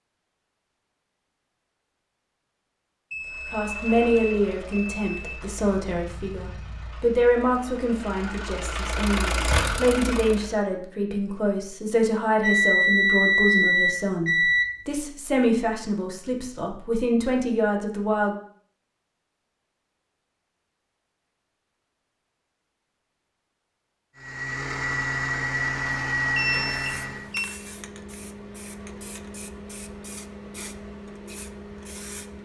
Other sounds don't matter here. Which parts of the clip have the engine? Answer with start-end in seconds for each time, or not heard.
3.2-10.6, 24.1-27.3.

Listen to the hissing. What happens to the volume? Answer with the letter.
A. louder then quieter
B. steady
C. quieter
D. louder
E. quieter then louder
B.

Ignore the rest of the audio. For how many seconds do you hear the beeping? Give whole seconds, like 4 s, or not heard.
6 s.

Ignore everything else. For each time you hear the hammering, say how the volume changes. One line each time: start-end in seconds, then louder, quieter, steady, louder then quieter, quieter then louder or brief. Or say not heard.
not heard.